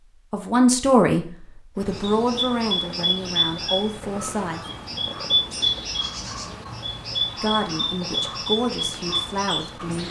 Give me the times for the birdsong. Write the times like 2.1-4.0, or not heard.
1.8-10.0.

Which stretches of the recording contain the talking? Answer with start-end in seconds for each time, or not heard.
0.3-4.7, 7.4-10.0.